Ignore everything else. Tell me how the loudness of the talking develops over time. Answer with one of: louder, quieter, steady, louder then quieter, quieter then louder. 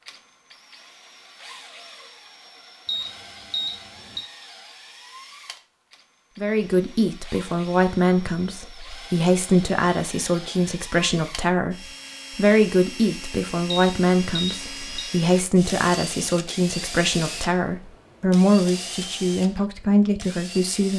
steady.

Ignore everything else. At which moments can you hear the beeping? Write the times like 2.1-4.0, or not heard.
2.9-4.2, 13.7-15.1.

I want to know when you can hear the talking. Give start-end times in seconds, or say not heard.
6.3-20.9.